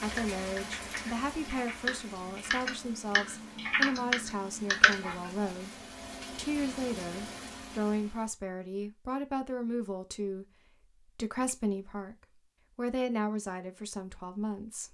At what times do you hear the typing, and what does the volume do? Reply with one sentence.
The typing can be heard from 0.0 to 5.5 s, getting louder.